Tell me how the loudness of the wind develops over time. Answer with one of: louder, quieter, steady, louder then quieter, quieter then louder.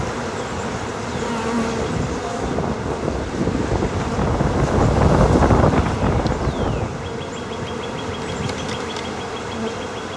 louder.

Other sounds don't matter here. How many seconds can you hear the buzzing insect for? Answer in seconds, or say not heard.
10 s.